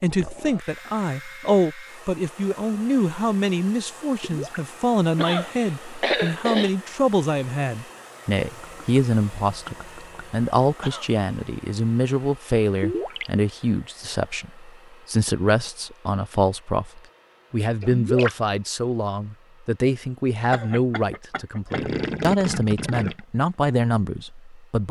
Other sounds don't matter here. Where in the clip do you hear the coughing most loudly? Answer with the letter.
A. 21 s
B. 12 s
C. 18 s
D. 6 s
D.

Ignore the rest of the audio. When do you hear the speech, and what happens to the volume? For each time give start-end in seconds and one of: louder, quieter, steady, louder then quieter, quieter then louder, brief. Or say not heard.
0.0-24.8 steady.